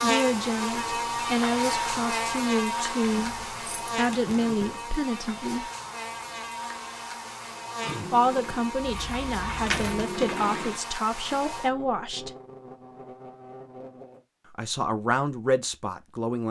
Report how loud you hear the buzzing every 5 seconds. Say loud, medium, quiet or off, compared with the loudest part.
loud, medium, medium, off.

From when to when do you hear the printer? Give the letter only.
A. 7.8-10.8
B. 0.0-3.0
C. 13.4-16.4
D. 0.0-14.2
A.